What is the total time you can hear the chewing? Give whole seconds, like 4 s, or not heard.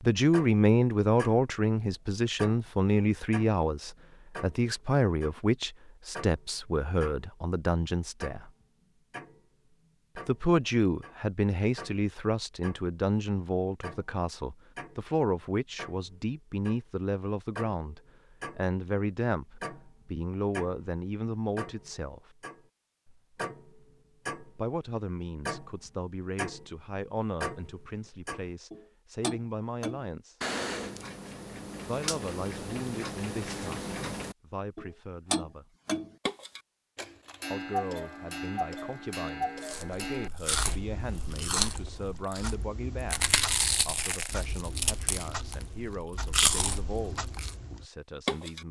8 s.